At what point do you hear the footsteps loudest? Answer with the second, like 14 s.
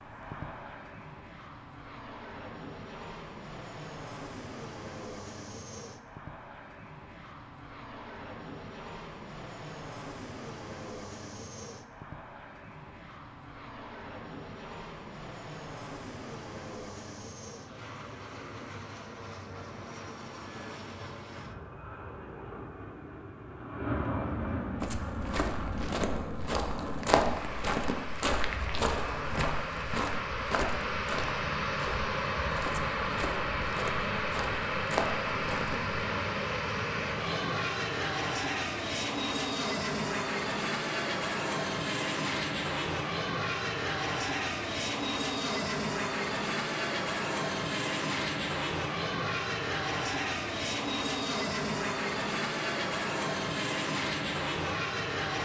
27 s.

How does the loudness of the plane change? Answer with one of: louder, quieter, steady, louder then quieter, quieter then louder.
louder.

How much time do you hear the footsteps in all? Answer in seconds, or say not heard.
11 s.